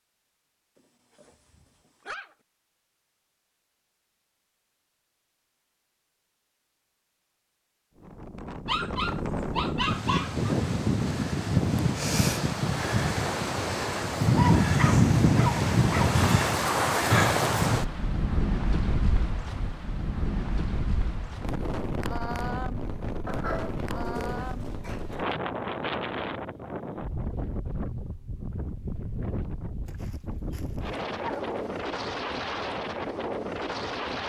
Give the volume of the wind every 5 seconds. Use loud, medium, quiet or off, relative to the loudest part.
off, medium, loud, loud, medium, medium, medium.